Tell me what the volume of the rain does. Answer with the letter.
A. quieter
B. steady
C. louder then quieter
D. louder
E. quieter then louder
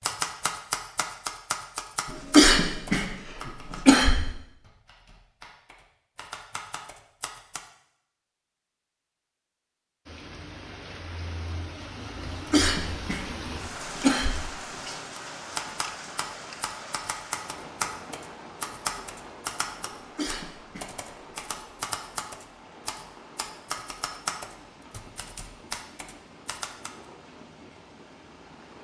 A.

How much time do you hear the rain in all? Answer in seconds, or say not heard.
19 s.